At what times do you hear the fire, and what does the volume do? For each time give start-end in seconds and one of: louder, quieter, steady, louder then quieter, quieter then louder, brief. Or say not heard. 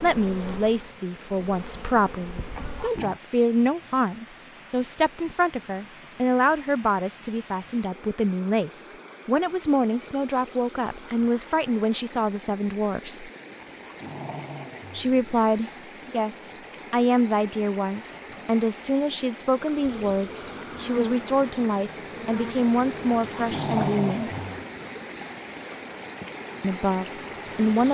not heard.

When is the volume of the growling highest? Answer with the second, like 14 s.
24 s.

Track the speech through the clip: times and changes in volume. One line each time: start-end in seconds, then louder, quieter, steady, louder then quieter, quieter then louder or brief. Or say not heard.
0.0-13.3 steady
14.9-24.3 steady
26.6-27.9 brief.